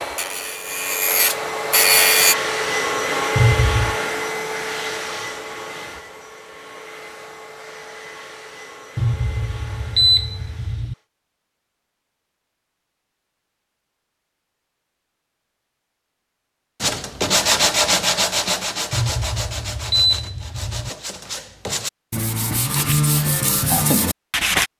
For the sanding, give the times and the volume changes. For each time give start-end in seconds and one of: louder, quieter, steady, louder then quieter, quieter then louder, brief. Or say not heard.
0.0-2.4 brief
16.8-24.7 quieter then louder.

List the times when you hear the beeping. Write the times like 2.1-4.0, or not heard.
3.4-4.0, 8.9-10.9, 18.9-20.9.